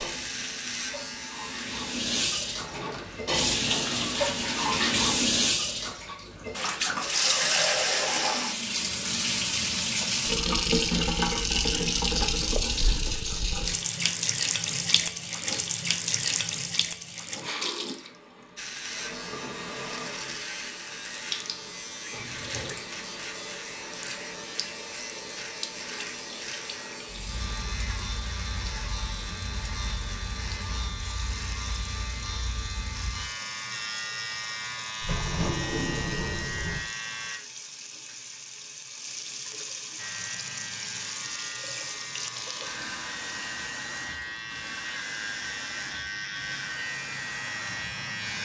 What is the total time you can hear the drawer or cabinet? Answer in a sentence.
You can hear the drawer or cabinet for 4 seconds altogether.